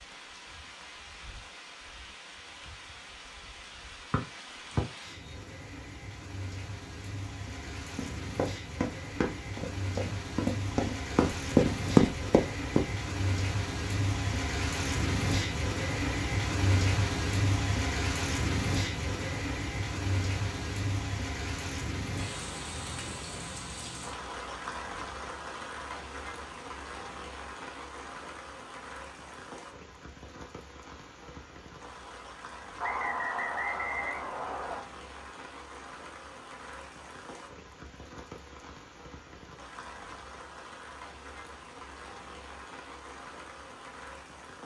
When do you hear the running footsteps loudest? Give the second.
12 s.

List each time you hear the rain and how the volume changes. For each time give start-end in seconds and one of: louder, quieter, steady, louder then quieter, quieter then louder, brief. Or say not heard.
0.0-44.6 louder then quieter.